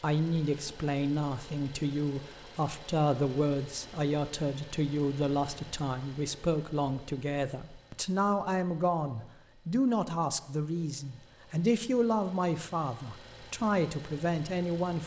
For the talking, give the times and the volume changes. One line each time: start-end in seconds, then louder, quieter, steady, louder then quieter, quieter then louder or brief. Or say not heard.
0.0-15.0 steady.